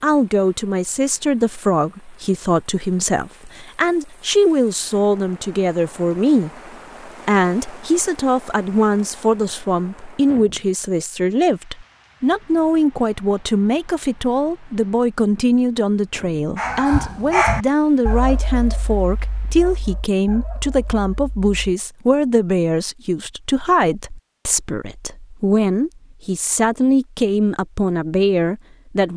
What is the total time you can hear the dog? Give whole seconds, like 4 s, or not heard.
5 s.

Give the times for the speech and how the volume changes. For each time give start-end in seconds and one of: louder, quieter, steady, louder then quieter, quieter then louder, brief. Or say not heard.
0.0-29.1 steady.